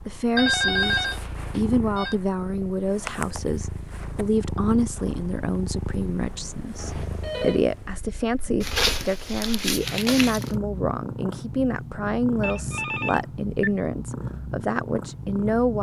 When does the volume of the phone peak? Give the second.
1 s.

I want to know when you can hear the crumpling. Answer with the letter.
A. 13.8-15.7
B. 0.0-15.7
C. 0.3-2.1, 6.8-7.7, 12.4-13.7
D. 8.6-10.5
D.